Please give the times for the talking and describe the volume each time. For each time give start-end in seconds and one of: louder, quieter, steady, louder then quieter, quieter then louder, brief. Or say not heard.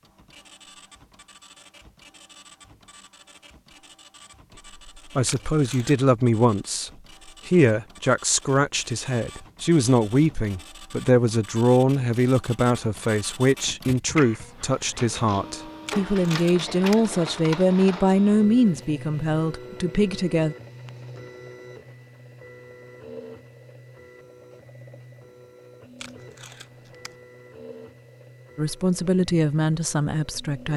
5.2-20.6 steady
28.6-30.7 brief.